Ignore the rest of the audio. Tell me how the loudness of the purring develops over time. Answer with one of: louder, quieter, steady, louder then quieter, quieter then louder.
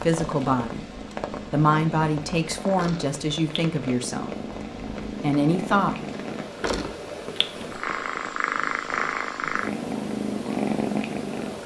louder.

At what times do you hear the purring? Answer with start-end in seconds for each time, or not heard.
0.1-11.6.